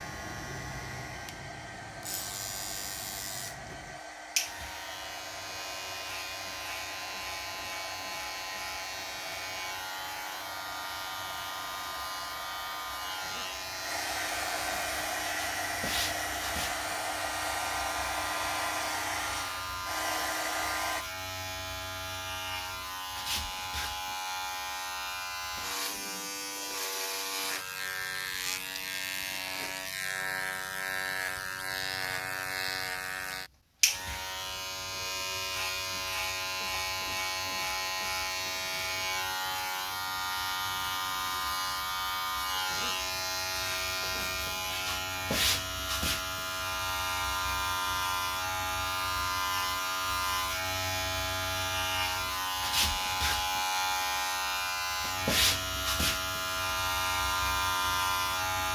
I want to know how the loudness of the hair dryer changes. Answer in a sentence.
The loudness of the hair dryer goes up.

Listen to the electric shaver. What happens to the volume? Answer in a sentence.
The loudness of the electric shaver goes up.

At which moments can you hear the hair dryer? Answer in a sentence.
You can hear the hair dryer from 0.0 to 21.1 s.